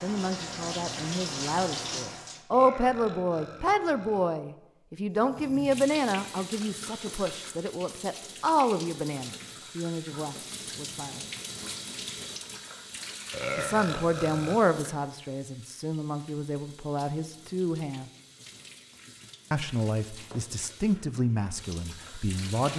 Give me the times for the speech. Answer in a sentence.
You can hear the speech from 0.0 to 11.3 s, from 13.6 to 18.1 s and from 19.5 to 22.7 s.